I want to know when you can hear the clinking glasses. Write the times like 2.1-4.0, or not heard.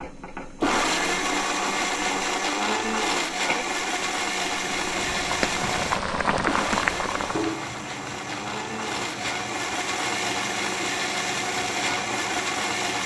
not heard.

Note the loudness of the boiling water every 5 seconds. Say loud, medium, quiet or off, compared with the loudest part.
medium, loud, medium.